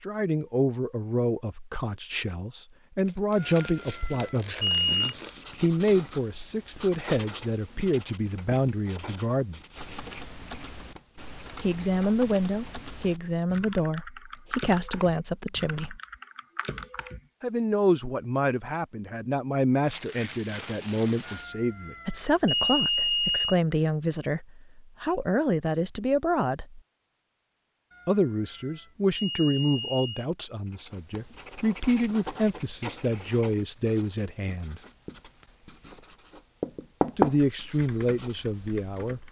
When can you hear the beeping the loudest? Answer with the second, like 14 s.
23 s.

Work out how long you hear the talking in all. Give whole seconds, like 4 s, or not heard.
32 s.